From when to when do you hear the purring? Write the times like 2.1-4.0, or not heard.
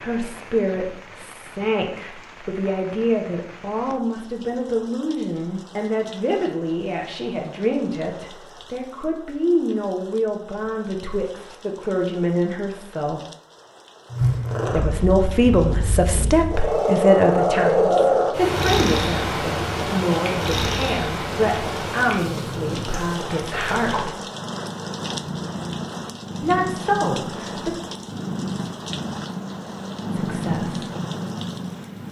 14.1-32.0.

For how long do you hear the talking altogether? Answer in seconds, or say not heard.
25 s.